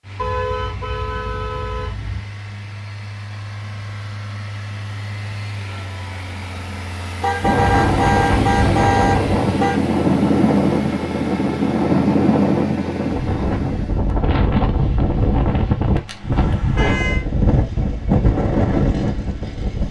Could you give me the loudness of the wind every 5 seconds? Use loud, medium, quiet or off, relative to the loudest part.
off, loud, loud, loud.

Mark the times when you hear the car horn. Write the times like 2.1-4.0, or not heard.
0.1-2.2, 7.2-9.8, 16.1-17.2.